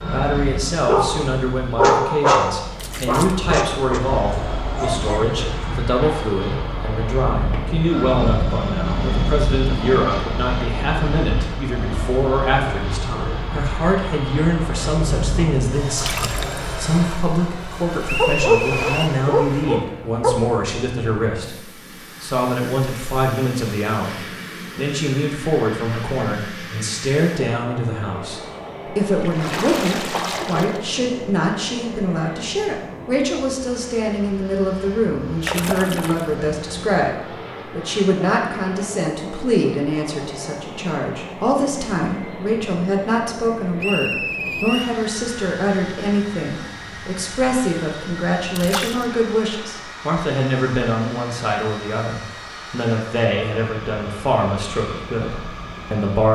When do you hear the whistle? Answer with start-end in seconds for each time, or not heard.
18.1-19.1, 43.8-45.0.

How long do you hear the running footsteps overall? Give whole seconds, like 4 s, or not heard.
not heard.